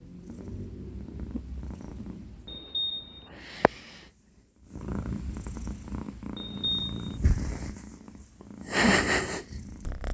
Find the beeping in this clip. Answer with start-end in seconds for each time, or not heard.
2.5-3.3, 6.3-7.2.